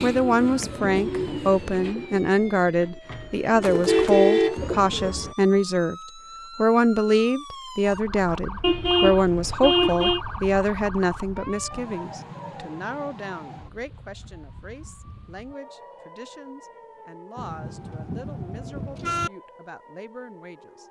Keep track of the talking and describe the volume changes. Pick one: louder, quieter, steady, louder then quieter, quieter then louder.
quieter.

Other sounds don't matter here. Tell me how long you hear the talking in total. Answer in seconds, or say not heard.
20 s.